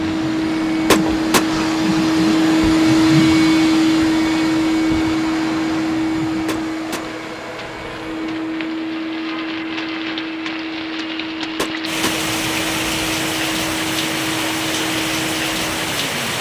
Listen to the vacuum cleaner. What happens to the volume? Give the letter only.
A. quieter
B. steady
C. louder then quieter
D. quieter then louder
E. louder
A.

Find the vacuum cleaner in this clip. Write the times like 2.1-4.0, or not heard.
0.0-16.1.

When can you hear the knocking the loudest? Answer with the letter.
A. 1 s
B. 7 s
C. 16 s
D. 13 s
A.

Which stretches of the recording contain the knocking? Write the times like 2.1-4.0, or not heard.
0.8-1.4, 6.5-7.0, 11.6-12.2.